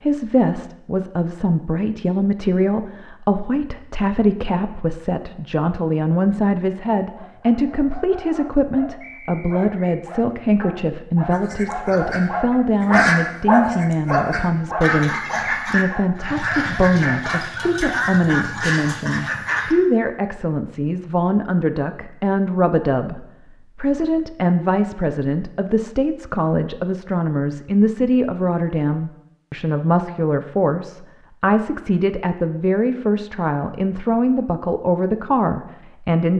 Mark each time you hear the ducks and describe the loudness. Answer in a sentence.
You can hear the ducks from 11.3 to 19.8 s, getting quieter then louder.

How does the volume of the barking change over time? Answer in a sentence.
The loudness of the barking goes up, then down.